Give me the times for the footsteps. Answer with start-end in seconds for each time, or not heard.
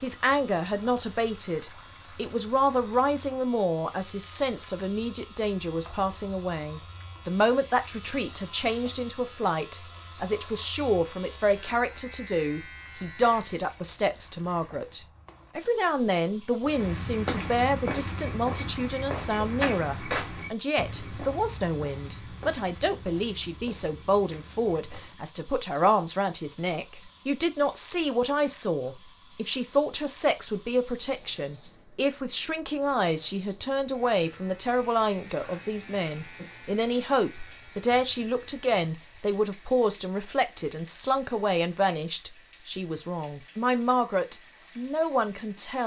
16.6-25.2.